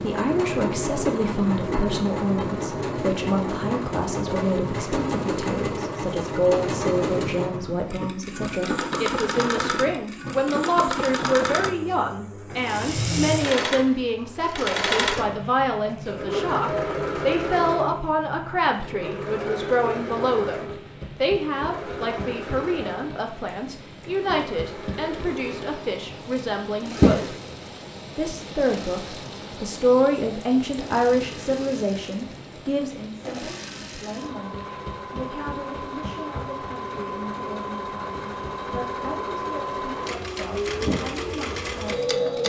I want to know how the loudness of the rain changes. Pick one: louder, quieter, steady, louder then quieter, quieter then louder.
louder then quieter.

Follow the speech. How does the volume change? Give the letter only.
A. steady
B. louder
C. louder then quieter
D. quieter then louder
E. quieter
E.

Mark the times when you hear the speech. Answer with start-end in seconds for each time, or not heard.
0.0-27.4, 28.1-42.4.